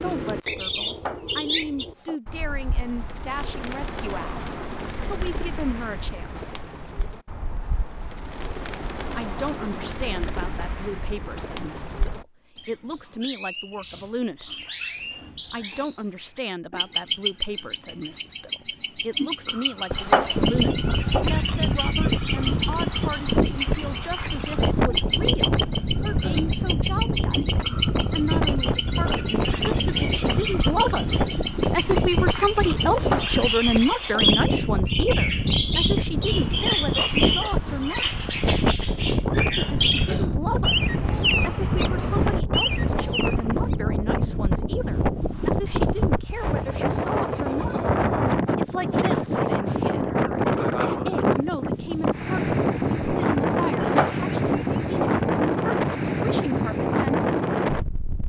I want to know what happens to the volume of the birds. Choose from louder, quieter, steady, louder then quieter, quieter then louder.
louder.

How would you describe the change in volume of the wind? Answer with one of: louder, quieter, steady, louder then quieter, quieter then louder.
steady.